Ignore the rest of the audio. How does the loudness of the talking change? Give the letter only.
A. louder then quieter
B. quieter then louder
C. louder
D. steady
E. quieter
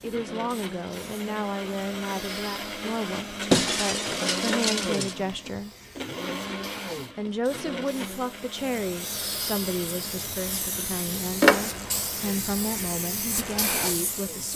D.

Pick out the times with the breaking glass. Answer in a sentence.
You can hear the breaking glass from 3.5 to 5.2 s.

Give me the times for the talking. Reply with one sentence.
You can hear the talking from 0.0 to 5.8 s and from 7.2 to 14.5 s.